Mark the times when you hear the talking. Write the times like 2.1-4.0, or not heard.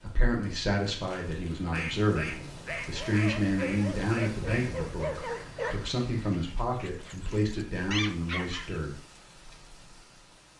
0.0-9.0.